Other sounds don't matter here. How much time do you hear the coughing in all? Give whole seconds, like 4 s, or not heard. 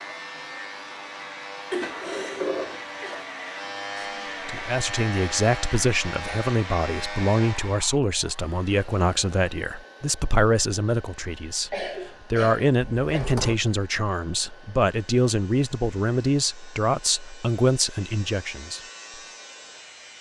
3 s.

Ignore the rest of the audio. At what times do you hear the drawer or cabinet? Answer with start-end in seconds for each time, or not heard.
1.8-3.2, 13.0-13.6.